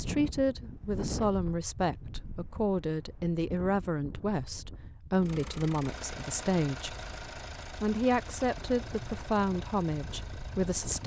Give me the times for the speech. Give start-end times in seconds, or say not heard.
0.0-7.0, 7.8-11.0.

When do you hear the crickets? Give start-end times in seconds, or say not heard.
not heard.